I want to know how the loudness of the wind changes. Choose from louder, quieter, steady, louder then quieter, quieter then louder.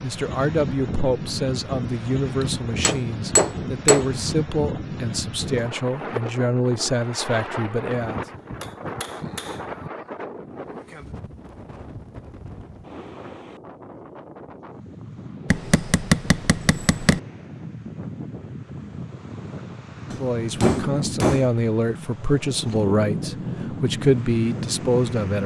quieter then louder.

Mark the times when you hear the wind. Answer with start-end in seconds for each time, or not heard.
0.0-25.4.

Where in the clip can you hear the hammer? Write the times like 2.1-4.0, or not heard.
2.4-4.1, 7.9-9.9, 15.5-17.2, 20.1-21.5.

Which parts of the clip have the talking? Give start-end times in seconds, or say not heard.
0.0-8.2, 20.1-25.4.